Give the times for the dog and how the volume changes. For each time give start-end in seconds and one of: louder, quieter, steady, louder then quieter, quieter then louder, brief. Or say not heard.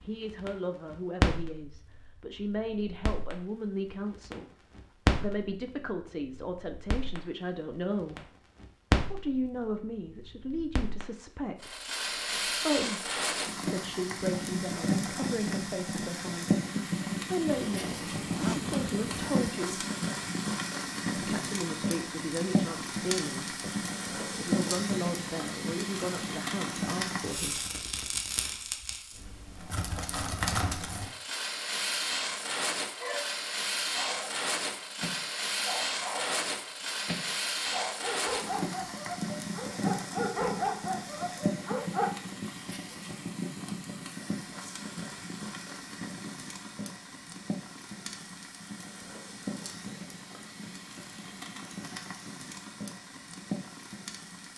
33.0-42.1 louder.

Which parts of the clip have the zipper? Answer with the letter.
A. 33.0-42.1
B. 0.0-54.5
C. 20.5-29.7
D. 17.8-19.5
D.